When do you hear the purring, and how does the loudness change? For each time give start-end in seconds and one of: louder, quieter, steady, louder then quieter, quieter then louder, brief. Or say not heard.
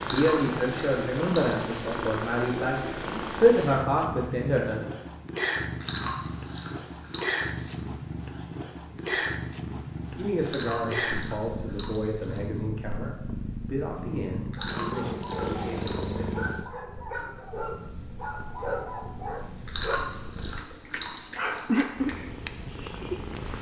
0.0-23.5 steady.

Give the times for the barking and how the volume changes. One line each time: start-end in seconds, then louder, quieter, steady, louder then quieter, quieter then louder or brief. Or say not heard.
14.6-22.3 steady.